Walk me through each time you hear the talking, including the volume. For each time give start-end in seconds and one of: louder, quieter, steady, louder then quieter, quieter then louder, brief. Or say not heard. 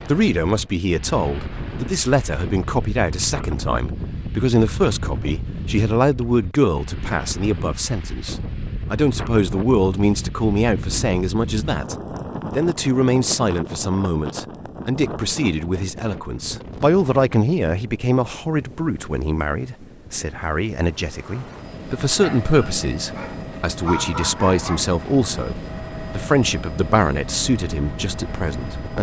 0.0-28.9 steady.